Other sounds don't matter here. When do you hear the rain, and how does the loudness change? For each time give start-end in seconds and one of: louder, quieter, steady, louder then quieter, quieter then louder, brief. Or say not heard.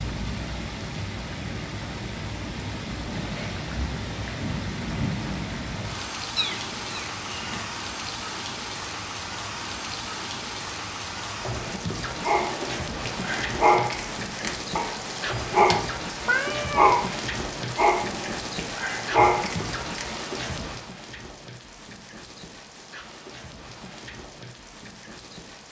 0.0-25.6 quieter.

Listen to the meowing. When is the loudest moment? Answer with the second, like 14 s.
17 s.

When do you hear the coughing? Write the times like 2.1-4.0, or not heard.
not heard.